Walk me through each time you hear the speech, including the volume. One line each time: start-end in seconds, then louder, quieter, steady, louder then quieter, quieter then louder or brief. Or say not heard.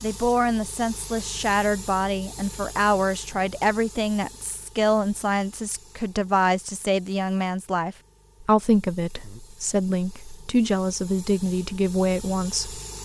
0.0-12.8 steady.